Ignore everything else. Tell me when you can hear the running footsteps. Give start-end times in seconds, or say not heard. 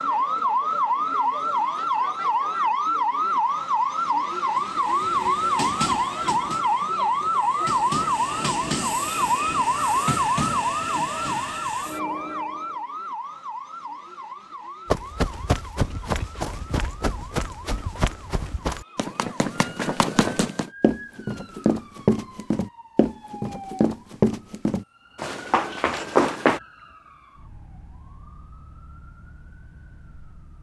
14.8-26.6.